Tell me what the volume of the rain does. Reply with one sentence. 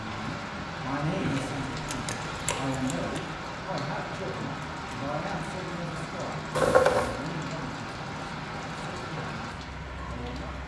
The volume of the rain stays about the same.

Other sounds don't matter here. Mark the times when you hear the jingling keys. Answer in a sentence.
You can hear the jingling keys from 1.2 to 3.3 s and from 6.5 to 7.2 s.